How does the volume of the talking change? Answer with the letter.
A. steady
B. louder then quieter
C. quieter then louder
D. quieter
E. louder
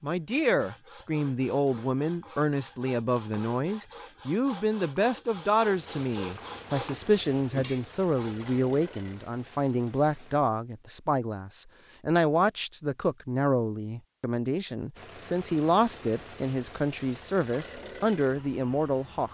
A.